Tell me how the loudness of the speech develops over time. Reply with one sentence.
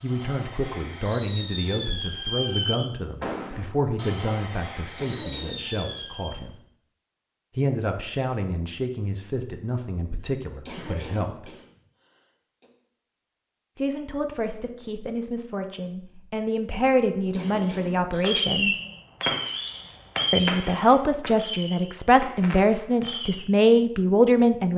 The loudness of the speech goes up.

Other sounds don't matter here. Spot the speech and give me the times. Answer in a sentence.
You can hear the speech from 0.0 to 6.5 s, from 7.5 to 11.5 s, from 13.8 to 18.8 s and from 20.3 to 24.7 s.